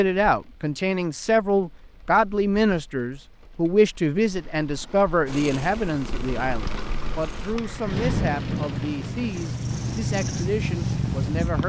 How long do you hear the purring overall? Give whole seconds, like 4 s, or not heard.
6 s.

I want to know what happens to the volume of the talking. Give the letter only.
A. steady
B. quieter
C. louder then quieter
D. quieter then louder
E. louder
B.